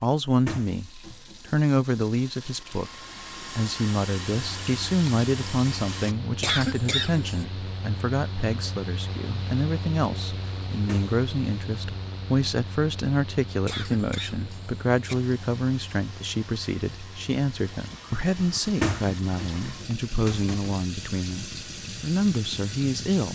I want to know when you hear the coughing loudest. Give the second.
7 s.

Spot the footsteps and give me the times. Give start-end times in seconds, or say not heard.
not heard.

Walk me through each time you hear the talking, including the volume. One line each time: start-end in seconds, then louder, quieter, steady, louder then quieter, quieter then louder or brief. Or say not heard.
0.0-23.2 steady.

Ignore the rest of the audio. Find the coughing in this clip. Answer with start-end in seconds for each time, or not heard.
6.4-7.5, 13.7-15.2.